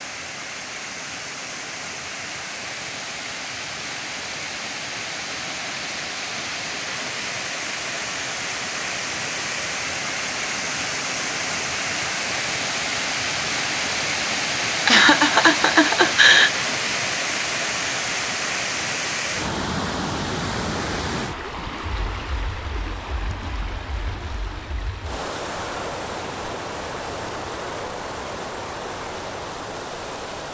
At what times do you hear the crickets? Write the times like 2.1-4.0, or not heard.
not heard.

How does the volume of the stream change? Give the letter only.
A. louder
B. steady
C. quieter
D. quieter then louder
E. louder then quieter
E.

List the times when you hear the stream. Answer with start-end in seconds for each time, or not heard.
0.0-30.4.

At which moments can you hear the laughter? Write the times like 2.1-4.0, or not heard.
14.8-16.5.